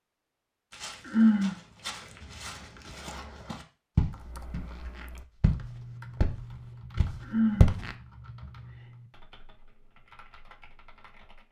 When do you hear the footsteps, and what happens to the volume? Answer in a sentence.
The footsteps can be heard from 0.7 to 8.0 s, getting louder then quieter.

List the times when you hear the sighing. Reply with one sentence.
The sighing can be heard from 1.1 to 1.6 s and from 7.2 to 7.8 s.